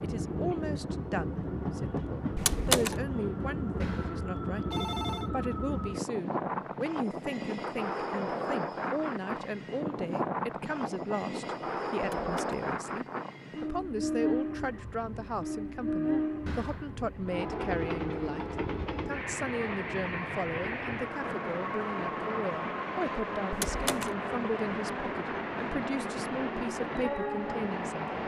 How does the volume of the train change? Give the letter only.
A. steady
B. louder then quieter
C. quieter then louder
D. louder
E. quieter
A.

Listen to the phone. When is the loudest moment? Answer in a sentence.
The volume of the phone peaks at 5 seconds.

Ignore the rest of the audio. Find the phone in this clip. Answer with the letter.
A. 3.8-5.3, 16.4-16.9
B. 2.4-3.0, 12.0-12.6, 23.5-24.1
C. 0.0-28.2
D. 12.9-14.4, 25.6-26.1
A.